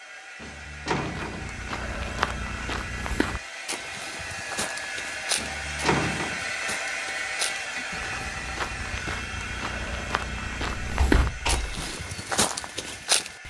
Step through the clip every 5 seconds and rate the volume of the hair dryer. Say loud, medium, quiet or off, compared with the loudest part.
medium, loud, medium.